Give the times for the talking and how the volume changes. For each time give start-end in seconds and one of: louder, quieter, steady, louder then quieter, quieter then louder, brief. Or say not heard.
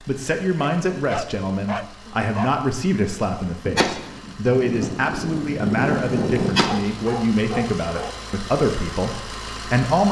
0.1-10.0 steady.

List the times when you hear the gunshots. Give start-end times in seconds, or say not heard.
3.6-7.0.